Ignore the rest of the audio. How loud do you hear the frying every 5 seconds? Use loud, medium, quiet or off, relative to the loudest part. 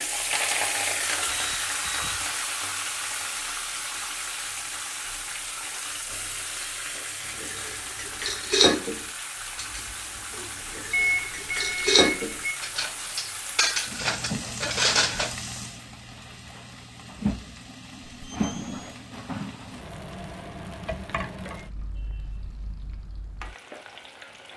loud, medium, medium, medium, medium.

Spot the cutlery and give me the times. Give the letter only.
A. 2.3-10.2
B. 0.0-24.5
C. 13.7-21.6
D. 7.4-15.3
D.